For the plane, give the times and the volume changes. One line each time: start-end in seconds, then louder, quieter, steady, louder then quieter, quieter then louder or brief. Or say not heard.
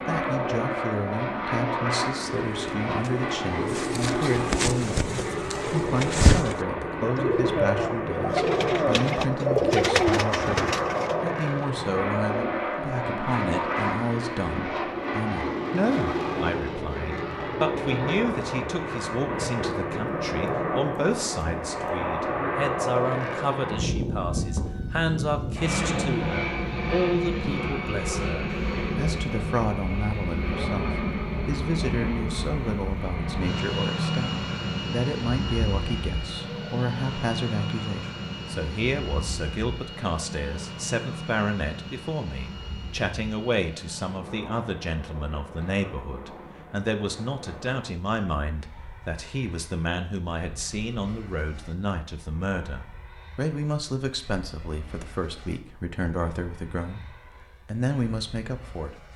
0.0-59.1 quieter.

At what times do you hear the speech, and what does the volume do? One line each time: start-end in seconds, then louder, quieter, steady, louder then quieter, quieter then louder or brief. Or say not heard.
0.1-59.0 steady.